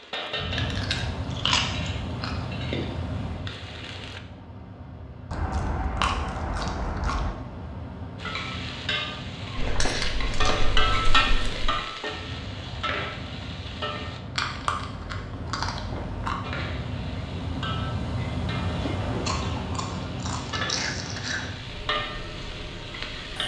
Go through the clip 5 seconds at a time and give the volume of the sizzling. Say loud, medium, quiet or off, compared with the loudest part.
medium, medium, loud, medium, medium.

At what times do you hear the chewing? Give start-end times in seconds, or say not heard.
0.5-2.9, 5.3-7.3, 9.6-11.8, 14.3-16.4, 18.8-21.4.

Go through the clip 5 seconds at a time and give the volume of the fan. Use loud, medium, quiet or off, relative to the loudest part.
loud, medium, medium, loud, medium.